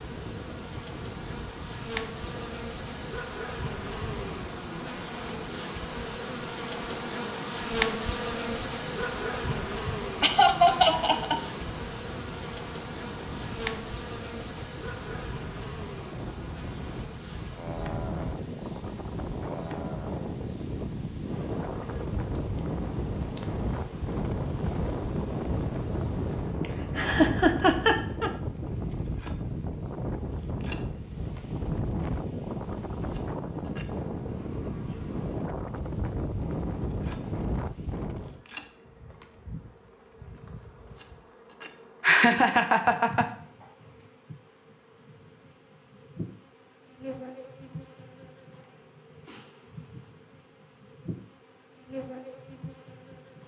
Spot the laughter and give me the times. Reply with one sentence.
The laughter can be heard from 10.2 to 11.4 s, from 26.6 to 28.3 s and from 42.0 to 43.2 s.